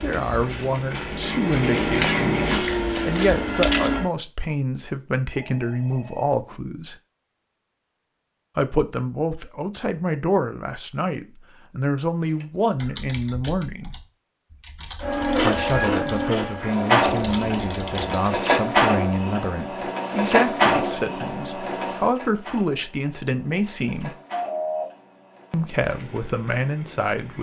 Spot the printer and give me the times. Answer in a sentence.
The printer can be heard from 0.0 to 4.0 s and from 15.0 to 27.3 s.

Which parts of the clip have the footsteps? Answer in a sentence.
You can hear the footsteps from 0.0 to 4.0 s.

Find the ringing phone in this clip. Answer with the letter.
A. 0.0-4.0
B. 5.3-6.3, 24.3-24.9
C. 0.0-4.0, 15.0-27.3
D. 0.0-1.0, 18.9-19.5
B.